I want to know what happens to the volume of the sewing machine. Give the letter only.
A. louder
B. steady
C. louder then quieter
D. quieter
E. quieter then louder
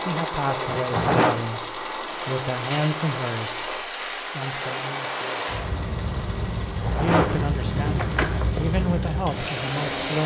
D.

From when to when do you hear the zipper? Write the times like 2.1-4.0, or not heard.
0.8-1.4, 6.7-8.6.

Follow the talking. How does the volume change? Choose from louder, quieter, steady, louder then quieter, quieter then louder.
quieter then louder.